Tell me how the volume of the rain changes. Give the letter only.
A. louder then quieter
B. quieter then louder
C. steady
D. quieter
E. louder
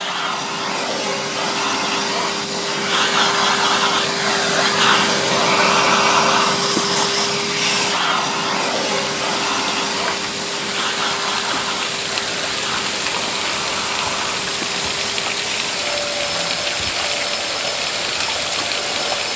C.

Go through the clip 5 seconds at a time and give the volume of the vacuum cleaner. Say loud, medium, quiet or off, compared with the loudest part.
loud, loud, medium, medium.